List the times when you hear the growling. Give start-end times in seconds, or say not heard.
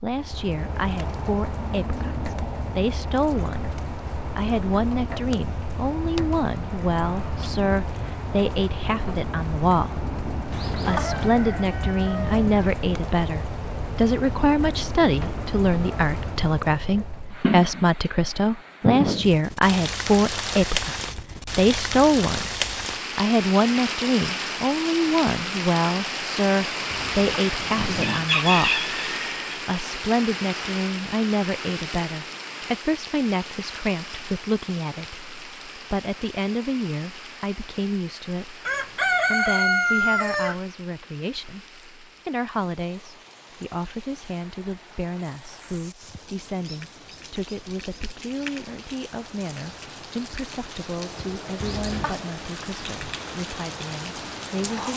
10.5-11.3, 26.9-28.3, 51.5-52.3.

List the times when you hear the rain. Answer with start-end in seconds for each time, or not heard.
0.0-54.9.